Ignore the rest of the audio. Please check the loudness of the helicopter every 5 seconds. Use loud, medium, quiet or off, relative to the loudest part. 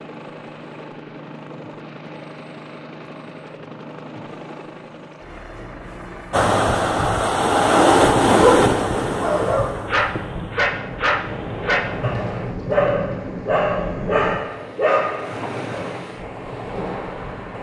loud, loud, off, off.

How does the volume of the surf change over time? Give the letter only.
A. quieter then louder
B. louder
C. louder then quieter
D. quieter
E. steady
D.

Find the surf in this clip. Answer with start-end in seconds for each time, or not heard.
6.3-17.5.